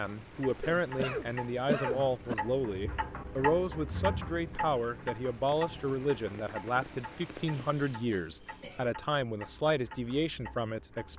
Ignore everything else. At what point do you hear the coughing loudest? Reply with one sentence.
The volume of the coughing peaks at 2 seconds.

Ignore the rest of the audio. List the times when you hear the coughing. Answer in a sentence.
The coughing can be heard from 0.6 to 2.4 s and from 7.7 to 8.9 s.